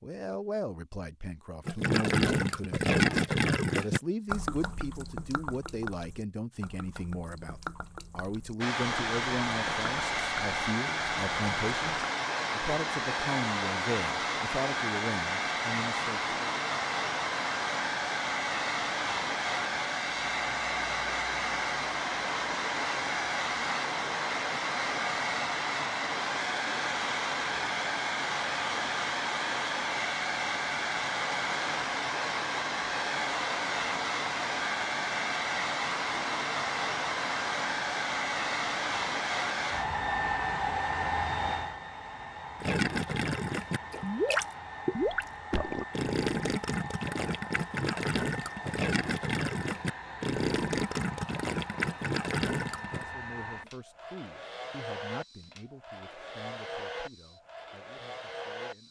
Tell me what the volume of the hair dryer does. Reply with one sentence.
The loudness of the hair dryer goes down.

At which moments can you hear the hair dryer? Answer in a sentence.
You can hear the hair dryer from 8.6 to 58.8 s.